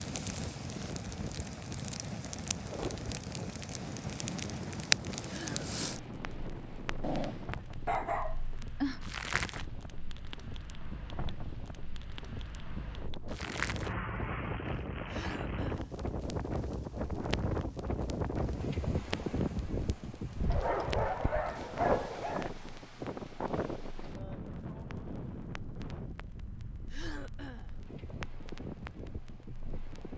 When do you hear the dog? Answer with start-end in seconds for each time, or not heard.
7.0-9.0, 20.5-22.5.